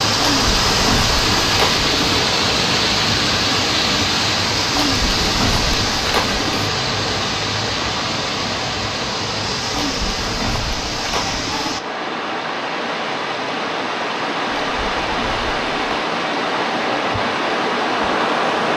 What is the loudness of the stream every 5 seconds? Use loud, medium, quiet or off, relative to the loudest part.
loud, loud, medium, loud.